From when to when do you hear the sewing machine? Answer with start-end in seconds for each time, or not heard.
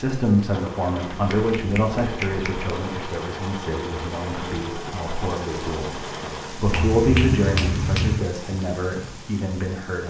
0.2-6.7.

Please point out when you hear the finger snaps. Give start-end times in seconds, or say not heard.
1.1-2.7, 6.7-8.3.